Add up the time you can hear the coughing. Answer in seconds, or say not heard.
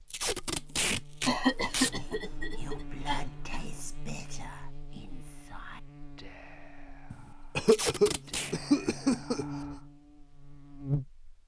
5 s.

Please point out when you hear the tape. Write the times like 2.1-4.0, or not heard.
0.1-1.9, 7.7-8.6.